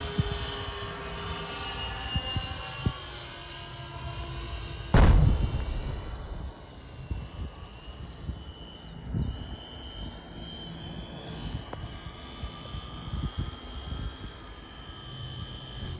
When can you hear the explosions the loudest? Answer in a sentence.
The volume of the explosions peaks at 5 seconds.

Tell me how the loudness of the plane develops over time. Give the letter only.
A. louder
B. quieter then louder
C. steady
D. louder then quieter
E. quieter
E.